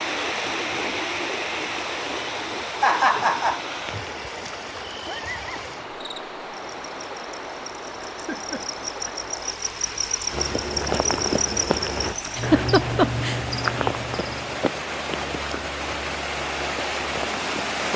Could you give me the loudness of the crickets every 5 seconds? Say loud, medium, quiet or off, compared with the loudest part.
quiet, medium, loud, off.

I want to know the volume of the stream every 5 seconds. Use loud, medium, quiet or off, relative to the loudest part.
loud, medium, medium, loud.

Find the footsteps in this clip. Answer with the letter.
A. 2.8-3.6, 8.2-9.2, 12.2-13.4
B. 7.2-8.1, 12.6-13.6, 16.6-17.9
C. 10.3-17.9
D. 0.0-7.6
C.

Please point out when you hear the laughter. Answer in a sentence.
The laughter can be heard from 2.8 to 3.6 s, from 8.2 to 9.2 s and from 12.2 to 13.4 s.